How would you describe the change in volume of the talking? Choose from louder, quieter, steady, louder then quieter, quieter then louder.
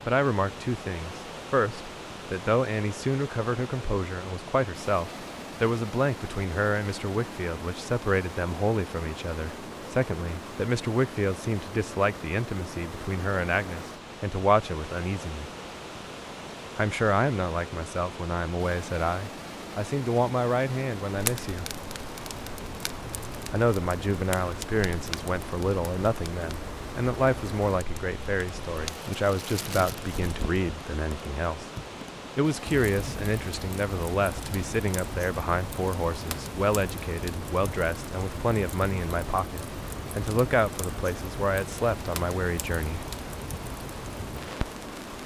steady.